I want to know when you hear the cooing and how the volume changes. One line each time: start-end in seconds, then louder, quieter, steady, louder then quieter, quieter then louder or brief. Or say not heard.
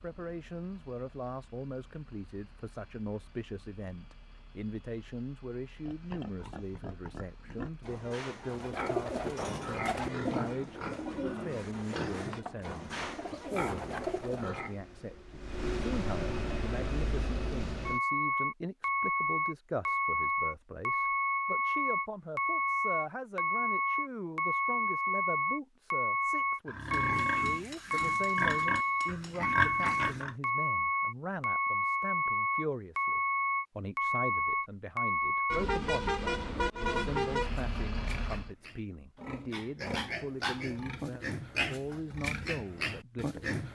8.4-14.6 quieter then louder.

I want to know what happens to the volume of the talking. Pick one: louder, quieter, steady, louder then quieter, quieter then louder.
steady.